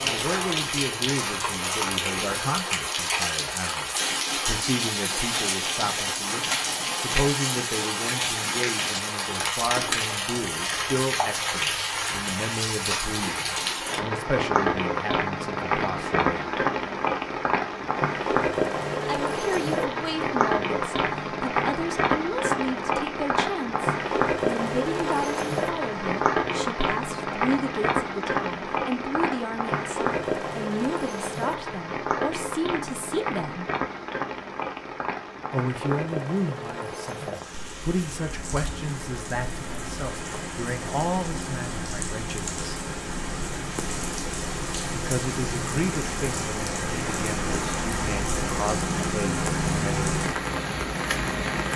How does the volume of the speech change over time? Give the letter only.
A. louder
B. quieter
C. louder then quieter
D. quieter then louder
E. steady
E.